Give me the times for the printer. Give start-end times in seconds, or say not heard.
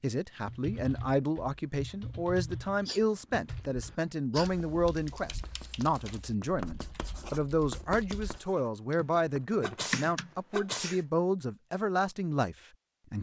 not heard.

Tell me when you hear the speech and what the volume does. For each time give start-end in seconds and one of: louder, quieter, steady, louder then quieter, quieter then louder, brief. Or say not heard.
0.0-13.1 steady.